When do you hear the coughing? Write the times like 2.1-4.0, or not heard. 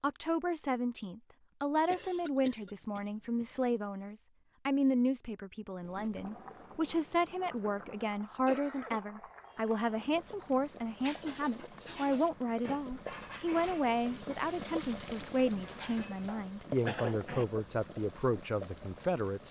1.9-3.8, 8.4-9.0, 16.8-17.4.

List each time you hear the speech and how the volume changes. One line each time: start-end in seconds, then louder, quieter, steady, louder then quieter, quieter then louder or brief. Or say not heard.
0.0-19.4 steady.